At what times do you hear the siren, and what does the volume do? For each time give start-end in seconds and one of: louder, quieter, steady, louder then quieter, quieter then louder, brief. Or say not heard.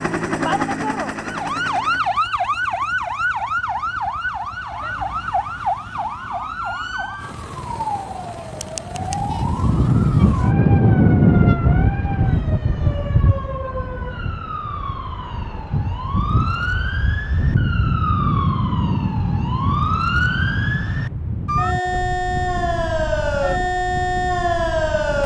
0.0-25.2 quieter then louder.